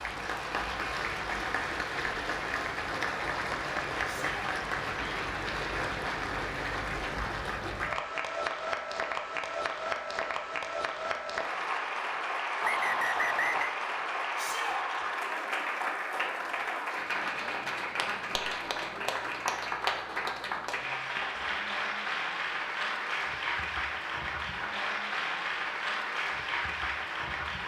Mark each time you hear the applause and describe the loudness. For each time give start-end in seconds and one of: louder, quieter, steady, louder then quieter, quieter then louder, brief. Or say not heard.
0.0-27.6 steady.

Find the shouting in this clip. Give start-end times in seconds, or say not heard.
4.0-4.5, 14.3-14.8.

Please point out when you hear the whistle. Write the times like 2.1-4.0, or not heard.
12.6-13.8.